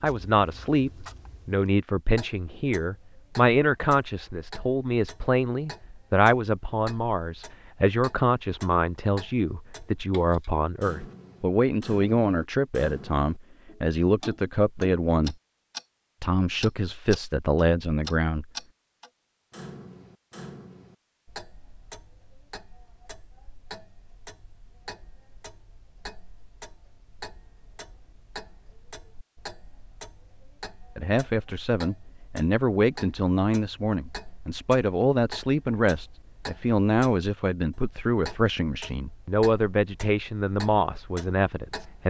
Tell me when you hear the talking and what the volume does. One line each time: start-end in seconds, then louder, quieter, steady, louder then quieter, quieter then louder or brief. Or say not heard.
0.0-15.3 steady
16.2-18.4 brief
30.9-42.0 steady.